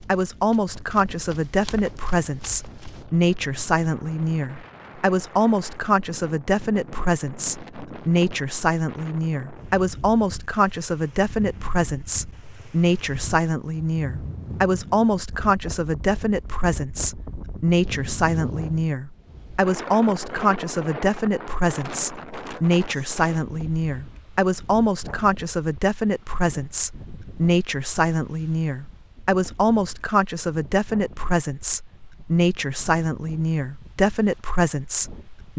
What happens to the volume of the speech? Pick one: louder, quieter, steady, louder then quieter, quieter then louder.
steady.